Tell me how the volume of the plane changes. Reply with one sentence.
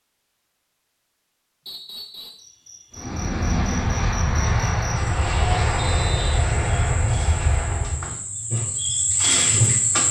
The loudness of the plane stays about the same.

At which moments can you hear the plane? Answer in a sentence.
You can hear the plane from 3.0 to 8.2 s.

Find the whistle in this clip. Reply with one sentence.
The whistle can be heard from 1.6 to 2.5 s and from 5.8 to 6.4 s.